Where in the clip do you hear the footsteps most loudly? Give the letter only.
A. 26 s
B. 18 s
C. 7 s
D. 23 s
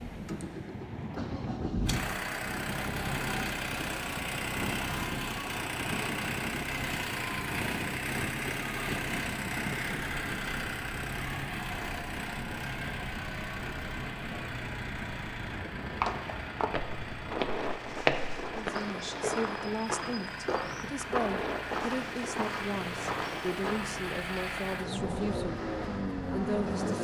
B.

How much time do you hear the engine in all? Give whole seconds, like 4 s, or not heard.
27 s.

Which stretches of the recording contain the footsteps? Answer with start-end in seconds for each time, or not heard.
16.0-23.9.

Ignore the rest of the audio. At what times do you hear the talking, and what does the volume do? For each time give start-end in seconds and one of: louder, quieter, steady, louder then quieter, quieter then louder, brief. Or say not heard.
18.5-25.6 steady
26.3-26.9 brief.